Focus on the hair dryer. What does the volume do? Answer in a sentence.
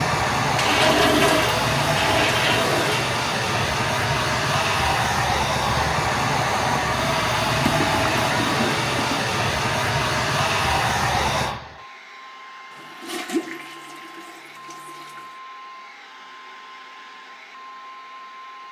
The volume of the hair dryer goes down.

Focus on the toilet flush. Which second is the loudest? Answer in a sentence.
The volume of the toilet flush peaks at 1 second.